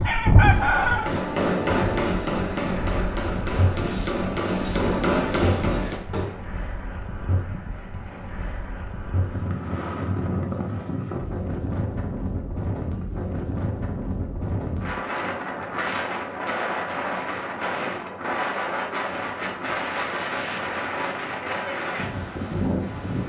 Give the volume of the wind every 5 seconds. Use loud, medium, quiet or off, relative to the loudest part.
loud, medium, loud, loud, loud.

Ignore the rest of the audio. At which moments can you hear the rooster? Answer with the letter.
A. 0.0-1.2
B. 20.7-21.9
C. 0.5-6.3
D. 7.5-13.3
A.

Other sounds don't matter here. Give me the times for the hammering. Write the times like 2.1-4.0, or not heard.
0.5-6.3.